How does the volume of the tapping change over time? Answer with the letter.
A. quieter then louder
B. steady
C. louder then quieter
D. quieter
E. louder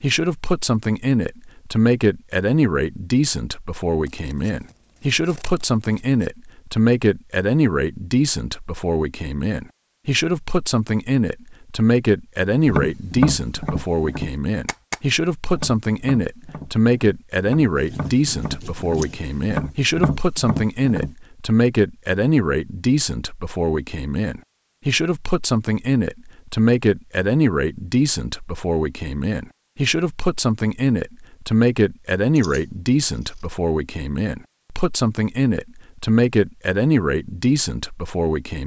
A.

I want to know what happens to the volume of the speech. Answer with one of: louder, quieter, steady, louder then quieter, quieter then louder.
steady.